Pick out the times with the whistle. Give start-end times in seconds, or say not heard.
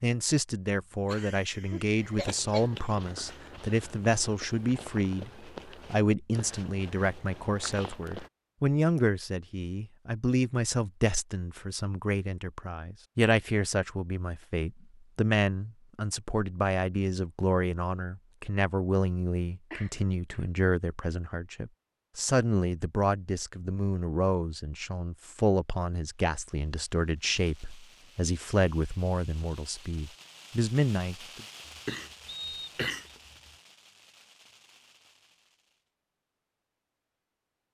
32.2-33.1.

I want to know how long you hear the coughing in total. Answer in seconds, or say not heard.
5 s.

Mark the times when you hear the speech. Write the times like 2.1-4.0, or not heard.
0.0-31.4.